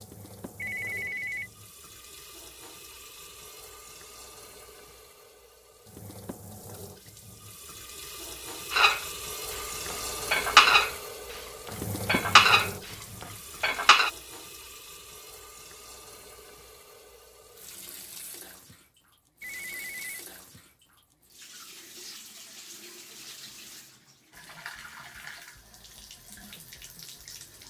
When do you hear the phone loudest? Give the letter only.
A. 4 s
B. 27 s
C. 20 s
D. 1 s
D.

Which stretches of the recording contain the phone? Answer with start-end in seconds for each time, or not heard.
0.6-1.5, 19.4-20.2.